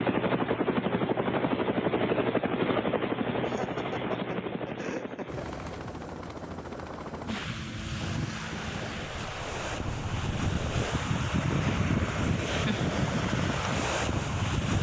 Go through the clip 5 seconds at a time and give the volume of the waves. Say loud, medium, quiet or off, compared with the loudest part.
off, medium, loud.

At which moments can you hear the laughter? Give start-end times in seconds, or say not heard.
3.4-5.5.